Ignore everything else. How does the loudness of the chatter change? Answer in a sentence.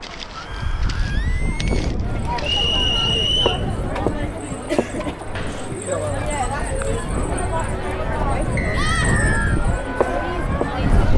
The volume of the chatter goes up.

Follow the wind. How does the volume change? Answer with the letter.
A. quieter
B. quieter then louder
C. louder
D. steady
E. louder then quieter
B.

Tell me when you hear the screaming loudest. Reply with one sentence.
The loudest moment of the screaming is at 9 seconds.